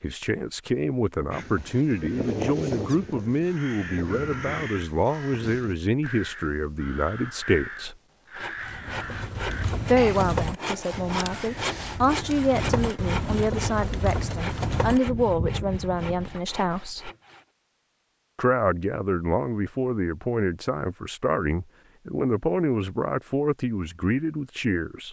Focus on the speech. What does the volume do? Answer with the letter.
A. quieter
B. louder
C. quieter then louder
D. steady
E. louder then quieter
D.